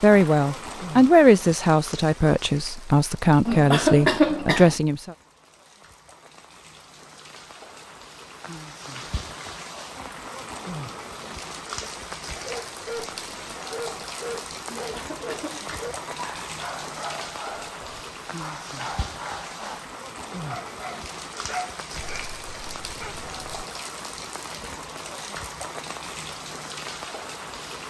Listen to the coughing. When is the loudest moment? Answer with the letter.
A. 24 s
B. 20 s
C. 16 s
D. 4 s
D.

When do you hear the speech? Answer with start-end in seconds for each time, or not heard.
0.0-5.2.